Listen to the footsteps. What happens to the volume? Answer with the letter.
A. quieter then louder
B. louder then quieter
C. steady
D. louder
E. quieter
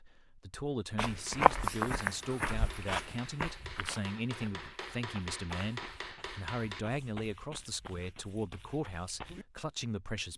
E.